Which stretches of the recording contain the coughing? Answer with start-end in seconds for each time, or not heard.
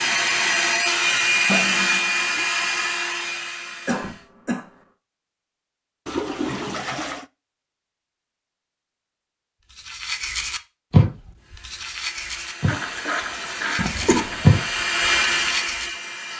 3.9-4.7, 13.8-14.4.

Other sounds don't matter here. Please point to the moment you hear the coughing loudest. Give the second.
14 s.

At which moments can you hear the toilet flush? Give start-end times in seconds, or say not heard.
1.4-2.5, 6.0-7.2, 12.7-14.7.